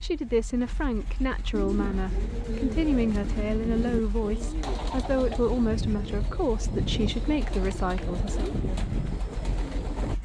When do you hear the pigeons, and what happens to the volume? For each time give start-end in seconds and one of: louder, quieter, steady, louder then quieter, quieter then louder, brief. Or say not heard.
1.5-10.2 steady.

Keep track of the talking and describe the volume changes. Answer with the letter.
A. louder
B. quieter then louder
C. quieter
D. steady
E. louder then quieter
D.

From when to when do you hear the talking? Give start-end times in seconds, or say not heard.
0.0-8.5.